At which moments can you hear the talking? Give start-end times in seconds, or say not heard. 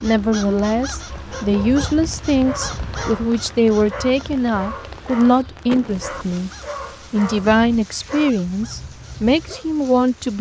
0.0-6.5, 7.1-10.3.